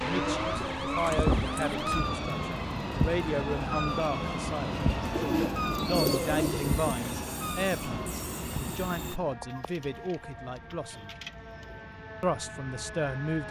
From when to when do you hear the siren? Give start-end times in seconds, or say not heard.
0.0-13.4.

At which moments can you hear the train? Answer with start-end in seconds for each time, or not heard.
0.1-9.2.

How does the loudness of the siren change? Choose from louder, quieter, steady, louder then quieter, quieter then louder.
quieter.